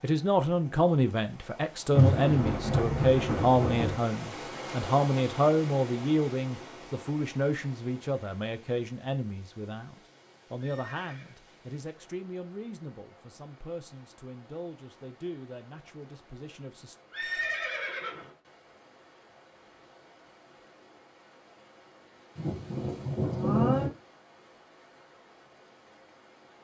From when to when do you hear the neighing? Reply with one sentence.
The neighing can be heard from 10.6 to 11.3 s and from 17.1 to 18.3 s.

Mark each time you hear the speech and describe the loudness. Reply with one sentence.
You can hear the speech from 0.0 to 16.9 s, getting quieter.